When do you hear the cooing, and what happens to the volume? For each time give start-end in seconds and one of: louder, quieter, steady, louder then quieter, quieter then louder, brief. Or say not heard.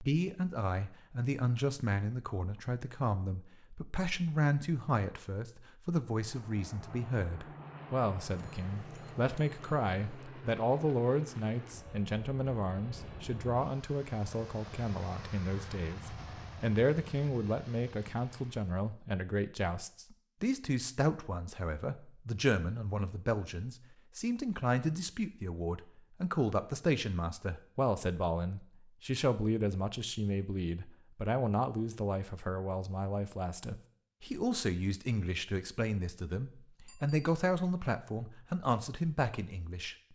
not heard.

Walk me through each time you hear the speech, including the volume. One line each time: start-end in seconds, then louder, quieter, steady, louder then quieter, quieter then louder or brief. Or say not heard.
0.0-40.1 steady.